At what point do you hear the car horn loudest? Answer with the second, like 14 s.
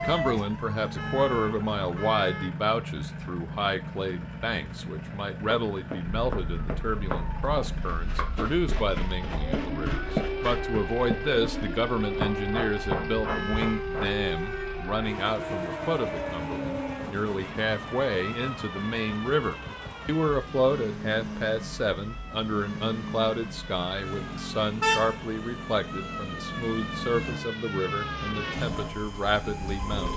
25 s.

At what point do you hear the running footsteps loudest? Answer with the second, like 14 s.
10 s.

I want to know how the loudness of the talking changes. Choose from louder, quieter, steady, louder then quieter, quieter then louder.
steady.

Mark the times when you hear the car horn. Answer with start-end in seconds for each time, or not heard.
0.8-2.5, 13.1-13.8, 24.8-25.2.